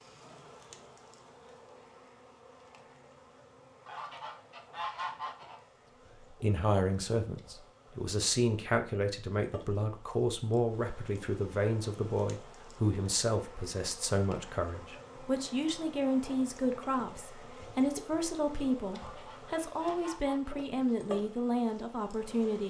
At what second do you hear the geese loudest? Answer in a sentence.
The loudest moment of the geese is at 5 seconds.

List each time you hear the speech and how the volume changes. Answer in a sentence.
You can hear the speech from 6.4 to 22.6 s, at a steady volume.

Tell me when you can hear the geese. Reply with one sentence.
You can hear the geese from 3.9 to 5.6 s and from 18.9 to 20.6 s.